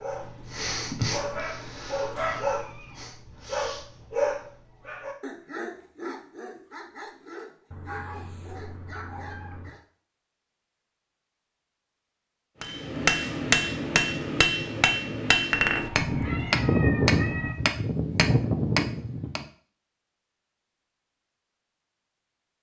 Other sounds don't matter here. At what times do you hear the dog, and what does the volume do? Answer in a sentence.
The dog can be heard from 0.0 to 9.8 s, getting quieter.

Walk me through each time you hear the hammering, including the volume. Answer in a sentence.
You can hear the hammering from 12.6 to 19.4 s, at a steady volume.